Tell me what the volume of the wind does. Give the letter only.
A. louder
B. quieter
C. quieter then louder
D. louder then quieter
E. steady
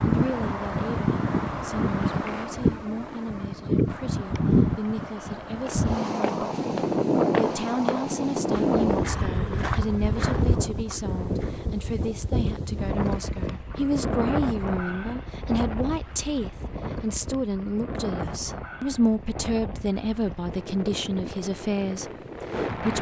B.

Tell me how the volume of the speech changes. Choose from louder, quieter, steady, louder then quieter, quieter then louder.
louder.